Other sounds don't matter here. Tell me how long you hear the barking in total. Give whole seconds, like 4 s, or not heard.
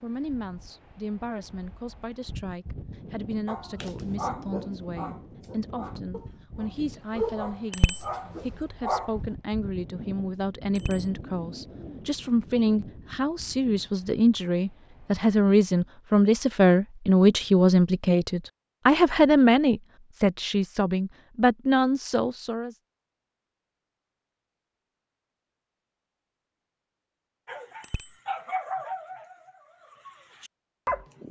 10 s.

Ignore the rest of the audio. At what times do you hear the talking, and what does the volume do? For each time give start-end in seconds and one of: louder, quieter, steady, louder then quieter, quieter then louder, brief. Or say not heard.
0.0-22.8 louder.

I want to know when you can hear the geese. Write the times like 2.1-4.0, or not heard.
not heard.